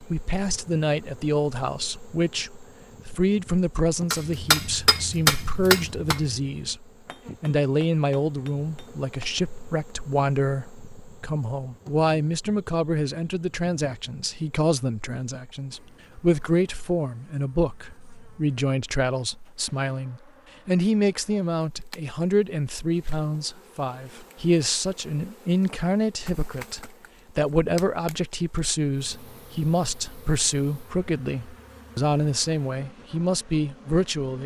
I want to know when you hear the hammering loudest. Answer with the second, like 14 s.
5 s.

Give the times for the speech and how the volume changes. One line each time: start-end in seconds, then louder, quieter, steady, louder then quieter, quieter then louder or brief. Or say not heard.
0.0-34.4 steady.